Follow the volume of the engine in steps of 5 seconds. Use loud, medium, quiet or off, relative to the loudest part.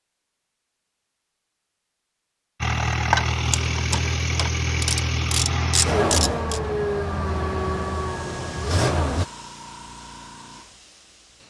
loud, loud, off.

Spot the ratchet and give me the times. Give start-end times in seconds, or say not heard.
3.1-6.6.